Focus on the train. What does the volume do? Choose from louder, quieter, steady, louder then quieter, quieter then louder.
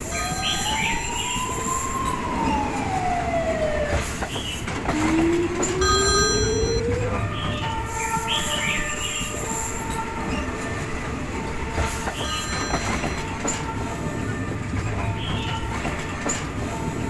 steady.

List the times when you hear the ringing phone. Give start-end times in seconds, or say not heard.
0.1-1.1, 5.8-6.8, 12.2-13.2.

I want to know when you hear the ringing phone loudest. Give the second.
6 s.